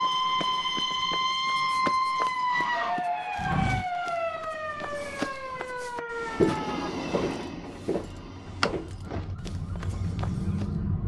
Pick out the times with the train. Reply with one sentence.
You can hear the train from 6.1 to 9.2 s.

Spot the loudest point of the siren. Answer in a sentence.
The volume of the siren peaks at 2 seconds.